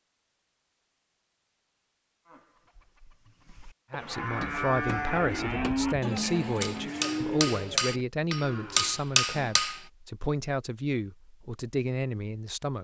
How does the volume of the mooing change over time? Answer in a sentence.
The loudness of the mooing goes up, then down.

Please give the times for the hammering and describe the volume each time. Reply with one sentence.
You can hear the hammering from 4.4 to 9.8 s, getting louder.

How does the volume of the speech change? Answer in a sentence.
The loudness of the speech stays about the same.